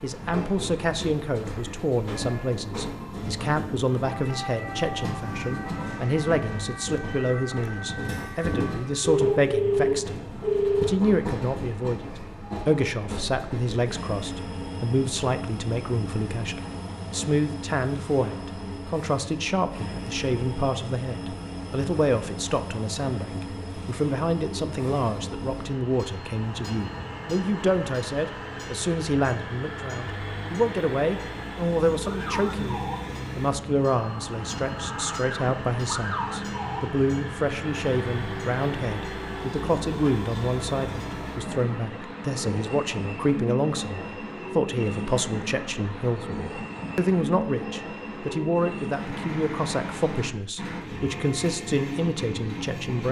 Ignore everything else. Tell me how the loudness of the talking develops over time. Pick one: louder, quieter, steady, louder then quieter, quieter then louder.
steady.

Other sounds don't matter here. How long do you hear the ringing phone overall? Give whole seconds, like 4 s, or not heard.
2 s.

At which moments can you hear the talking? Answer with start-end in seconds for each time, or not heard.
0.0-53.0.